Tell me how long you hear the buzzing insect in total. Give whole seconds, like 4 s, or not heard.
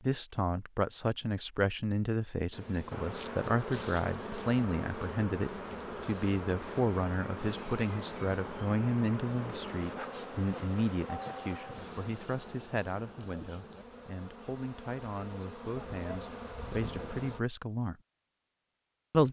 15 s.